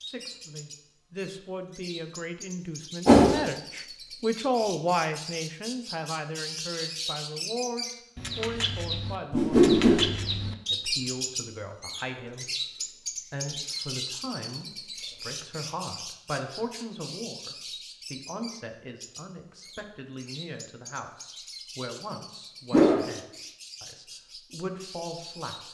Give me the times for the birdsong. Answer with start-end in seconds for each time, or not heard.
0.0-25.6.